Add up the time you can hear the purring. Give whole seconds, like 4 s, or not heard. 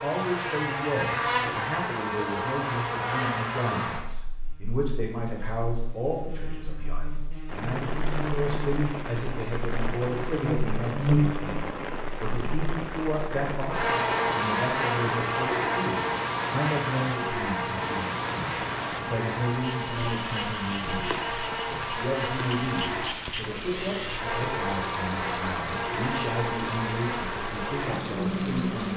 not heard.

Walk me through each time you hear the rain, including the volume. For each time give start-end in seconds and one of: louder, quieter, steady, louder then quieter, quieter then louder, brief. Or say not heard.
7.5-28.9 steady.